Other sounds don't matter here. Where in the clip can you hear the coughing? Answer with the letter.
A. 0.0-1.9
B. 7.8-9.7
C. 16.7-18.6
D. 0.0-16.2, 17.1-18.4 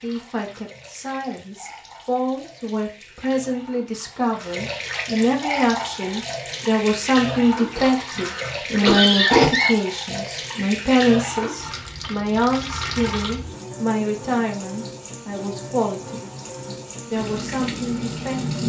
B.